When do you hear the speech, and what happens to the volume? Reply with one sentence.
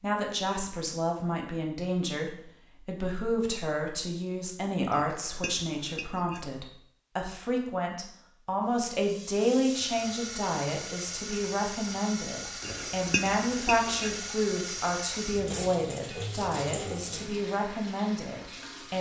You can hear the speech from 0.0 to 18.9 s, at a steady volume.